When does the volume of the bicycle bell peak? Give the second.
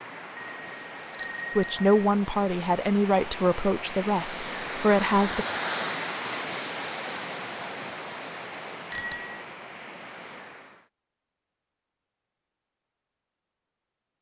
9 s.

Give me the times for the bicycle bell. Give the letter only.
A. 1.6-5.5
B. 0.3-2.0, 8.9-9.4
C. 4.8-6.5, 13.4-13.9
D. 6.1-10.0
B.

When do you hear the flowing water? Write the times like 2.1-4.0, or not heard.
0.0-10.9.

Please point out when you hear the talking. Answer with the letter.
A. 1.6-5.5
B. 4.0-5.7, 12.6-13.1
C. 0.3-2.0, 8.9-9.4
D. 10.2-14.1
A.